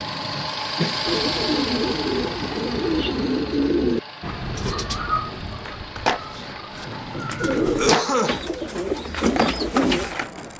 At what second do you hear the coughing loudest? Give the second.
8 s.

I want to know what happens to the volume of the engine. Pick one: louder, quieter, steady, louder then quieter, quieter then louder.
quieter.